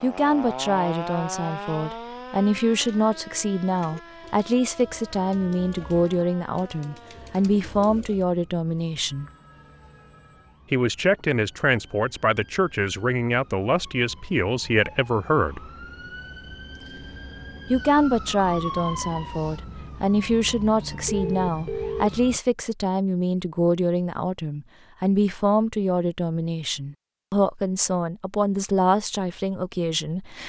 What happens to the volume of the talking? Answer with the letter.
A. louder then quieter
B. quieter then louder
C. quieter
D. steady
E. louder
D.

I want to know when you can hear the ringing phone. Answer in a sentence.
You can hear the ringing phone from 8.9 to 10.6 s and from 21.1 to 22.2 s.